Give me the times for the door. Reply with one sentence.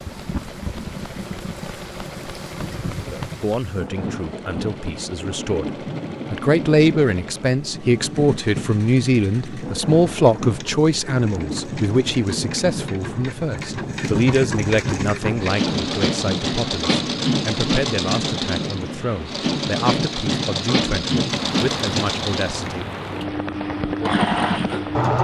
The door can't be heard in this clip.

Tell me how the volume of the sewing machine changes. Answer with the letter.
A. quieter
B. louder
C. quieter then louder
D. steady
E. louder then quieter
B.